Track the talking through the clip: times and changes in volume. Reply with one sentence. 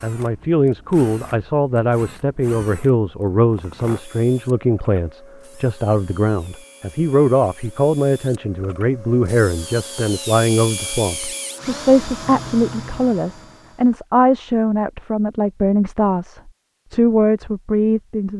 You can hear the talking from 0.0 to 18.3 s, at a steady volume.